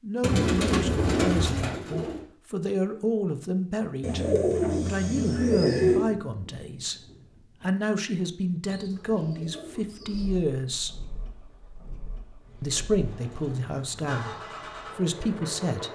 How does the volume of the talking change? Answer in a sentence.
The loudness of the talking stays about the same.